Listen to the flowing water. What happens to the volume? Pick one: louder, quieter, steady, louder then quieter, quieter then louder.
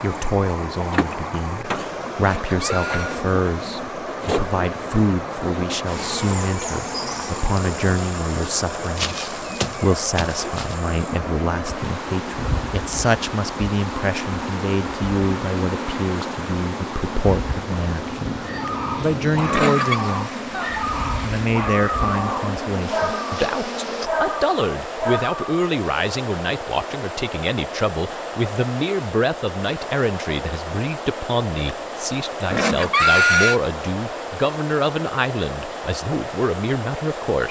steady.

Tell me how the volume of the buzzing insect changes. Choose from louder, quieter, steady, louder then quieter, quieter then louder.
steady.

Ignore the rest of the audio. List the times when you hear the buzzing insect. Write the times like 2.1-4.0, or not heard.
0.1-24.1.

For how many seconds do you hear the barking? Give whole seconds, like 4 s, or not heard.
7 s.